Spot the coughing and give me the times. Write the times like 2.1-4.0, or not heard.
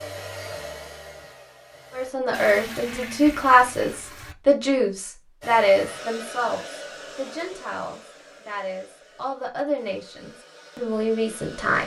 not heard.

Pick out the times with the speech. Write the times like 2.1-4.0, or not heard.
1.9-11.8.